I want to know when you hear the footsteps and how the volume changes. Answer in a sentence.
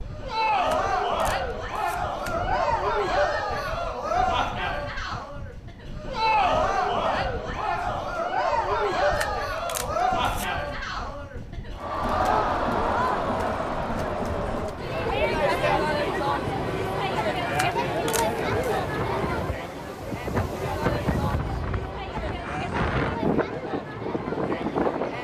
You can't hear the footsteps here.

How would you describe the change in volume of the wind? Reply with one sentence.
The volume of the wind goes up.